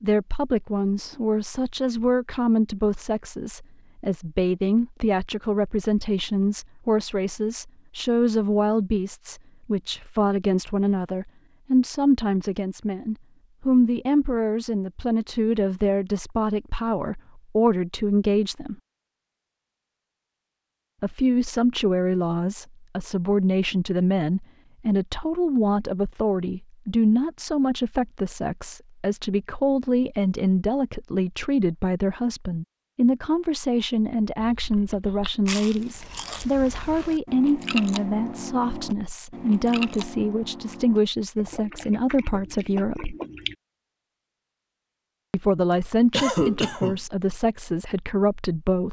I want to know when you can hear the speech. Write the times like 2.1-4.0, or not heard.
0.0-18.8, 21.0-43.1, 45.3-48.8.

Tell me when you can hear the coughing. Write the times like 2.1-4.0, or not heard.
45.7-47.0.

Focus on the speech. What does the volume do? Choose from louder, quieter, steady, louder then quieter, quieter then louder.
steady.